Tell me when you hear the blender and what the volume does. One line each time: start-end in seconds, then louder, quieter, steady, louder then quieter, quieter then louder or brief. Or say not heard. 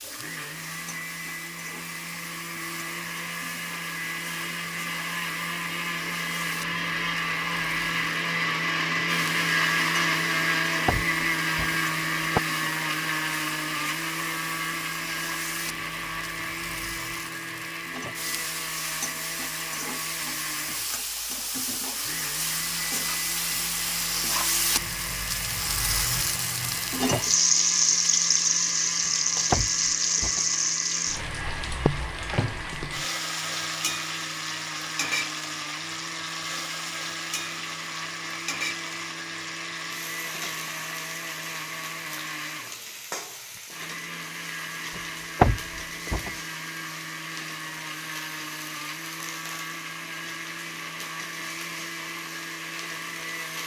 0.0-53.6 quieter.